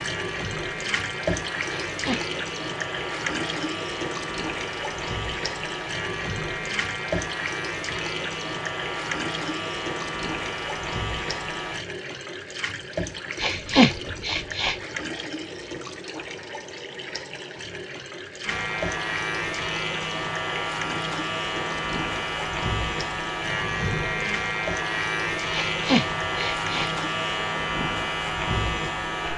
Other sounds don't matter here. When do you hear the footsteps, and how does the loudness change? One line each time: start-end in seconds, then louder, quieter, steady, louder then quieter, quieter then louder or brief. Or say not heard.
not heard.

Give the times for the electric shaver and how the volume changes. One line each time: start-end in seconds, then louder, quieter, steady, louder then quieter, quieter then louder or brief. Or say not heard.
0.0-11.8 steady
18.4-29.3 steady.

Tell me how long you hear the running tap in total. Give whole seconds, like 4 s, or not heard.
27 s.